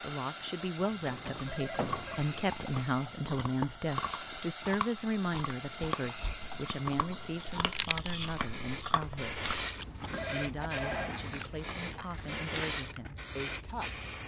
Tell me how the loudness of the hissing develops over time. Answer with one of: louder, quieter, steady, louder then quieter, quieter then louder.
steady.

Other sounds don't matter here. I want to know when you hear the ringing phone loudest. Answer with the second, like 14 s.
11 s.